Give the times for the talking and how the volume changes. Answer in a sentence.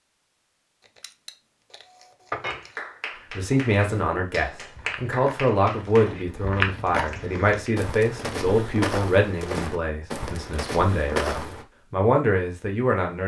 You can hear the talking from 3.3 to 13.2 s, at a steady volume.